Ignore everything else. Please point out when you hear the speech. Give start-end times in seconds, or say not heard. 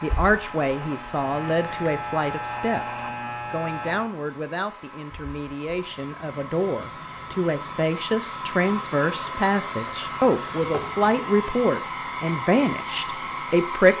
0.0-13.9.